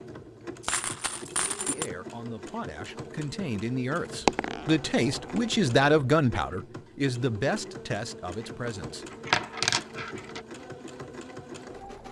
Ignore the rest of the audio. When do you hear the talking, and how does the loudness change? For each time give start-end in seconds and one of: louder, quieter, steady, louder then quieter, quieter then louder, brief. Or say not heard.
1.6-9.1 louder then quieter.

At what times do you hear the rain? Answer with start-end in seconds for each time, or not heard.
not heard.